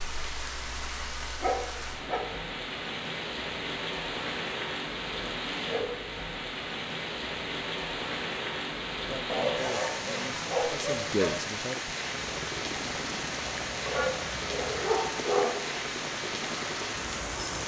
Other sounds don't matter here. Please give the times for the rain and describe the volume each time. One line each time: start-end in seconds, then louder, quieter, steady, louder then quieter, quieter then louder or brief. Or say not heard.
0.0-17.6 steady.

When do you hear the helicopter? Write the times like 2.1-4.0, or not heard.
12.1-17.6.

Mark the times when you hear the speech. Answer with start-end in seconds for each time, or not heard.
9.1-11.9.